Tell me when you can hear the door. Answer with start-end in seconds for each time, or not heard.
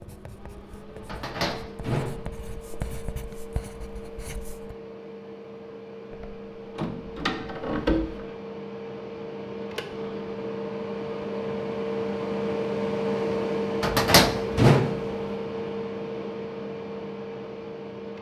1.1-2.8, 6.1-8.3, 13.8-15.1.